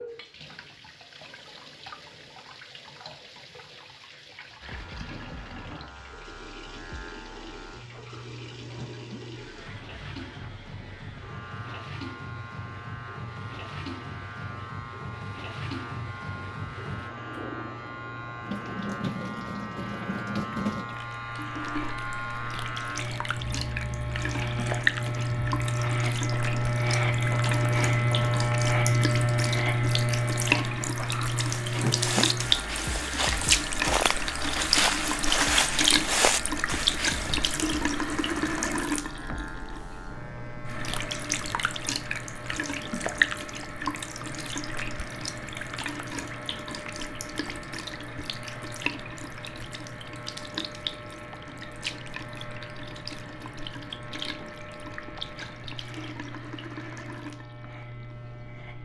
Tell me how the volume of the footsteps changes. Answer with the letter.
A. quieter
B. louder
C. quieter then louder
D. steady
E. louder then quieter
B.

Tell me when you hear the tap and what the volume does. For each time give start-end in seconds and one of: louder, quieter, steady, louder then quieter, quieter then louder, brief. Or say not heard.
0.0-58.8 louder then quieter.